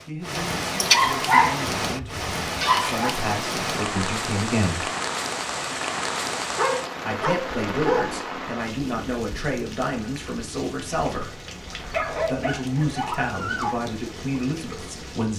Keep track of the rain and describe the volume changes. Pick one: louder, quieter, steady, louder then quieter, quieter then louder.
quieter.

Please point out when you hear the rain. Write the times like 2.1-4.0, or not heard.
0.0-15.3.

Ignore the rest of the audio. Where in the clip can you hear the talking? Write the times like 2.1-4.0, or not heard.
0.1-4.8, 7.0-11.4, 12.2-15.3.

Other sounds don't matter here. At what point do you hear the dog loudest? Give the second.
1 s.